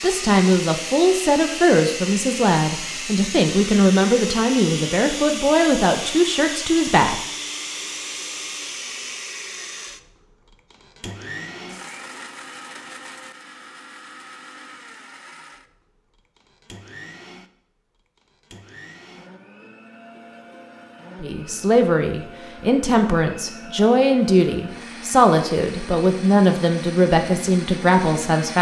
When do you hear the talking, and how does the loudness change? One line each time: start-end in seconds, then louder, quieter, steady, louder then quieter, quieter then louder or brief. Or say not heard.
0.0-7.2 steady
21.2-28.5 steady.